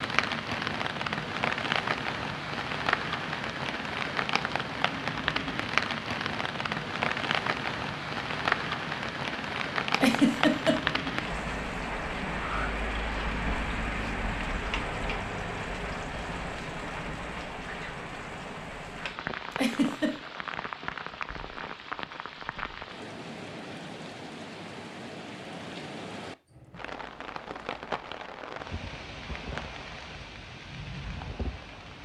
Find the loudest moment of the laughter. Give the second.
10 s.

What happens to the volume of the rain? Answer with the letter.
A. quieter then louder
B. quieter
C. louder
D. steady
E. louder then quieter
B.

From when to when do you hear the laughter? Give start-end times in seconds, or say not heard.
10.0-10.9, 19.5-20.1.